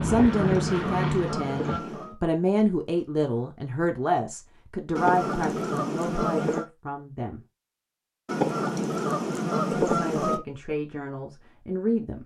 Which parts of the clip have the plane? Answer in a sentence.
You can hear the plane from 0.0 to 1.8 s.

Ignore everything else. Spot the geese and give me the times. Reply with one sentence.
You can hear the geese from 0.1 to 2.1 s, from 5.0 to 6.7 s and from 8.2 to 10.4 s.